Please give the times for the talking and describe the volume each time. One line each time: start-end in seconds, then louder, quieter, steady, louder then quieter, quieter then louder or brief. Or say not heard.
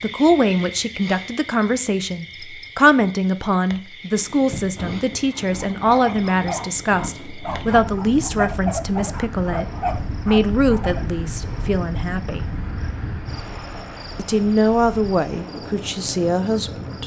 0.0-12.4 steady
14.2-17.0 brief.